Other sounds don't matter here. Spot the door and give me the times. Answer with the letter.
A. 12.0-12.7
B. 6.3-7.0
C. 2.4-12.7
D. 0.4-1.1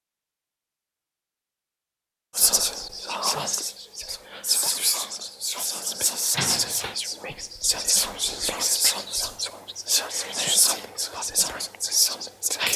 B.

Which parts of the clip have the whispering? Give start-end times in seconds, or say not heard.
2.4-12.7.